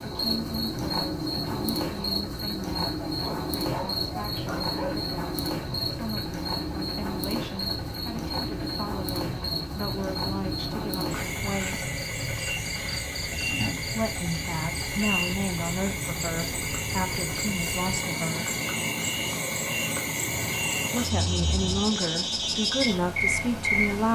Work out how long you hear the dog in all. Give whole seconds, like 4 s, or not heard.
2 s.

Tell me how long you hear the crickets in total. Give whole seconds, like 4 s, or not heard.
24 s.